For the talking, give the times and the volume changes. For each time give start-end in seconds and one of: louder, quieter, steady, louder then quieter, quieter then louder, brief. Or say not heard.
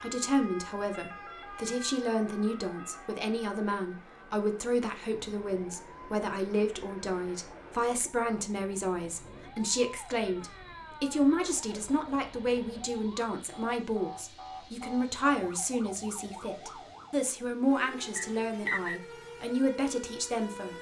0.0-20.7 steady.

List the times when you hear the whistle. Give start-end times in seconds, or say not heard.
18.1-19.0.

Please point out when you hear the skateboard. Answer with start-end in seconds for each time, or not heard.
not heard.